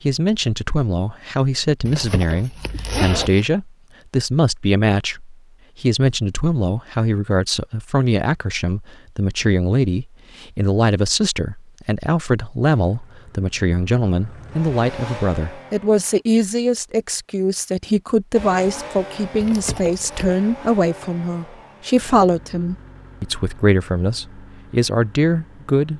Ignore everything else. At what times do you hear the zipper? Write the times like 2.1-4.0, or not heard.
1.9-3.5, 19.4-20.3.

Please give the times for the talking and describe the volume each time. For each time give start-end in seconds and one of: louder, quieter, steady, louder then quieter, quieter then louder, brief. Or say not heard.
0.0-25.9 steady.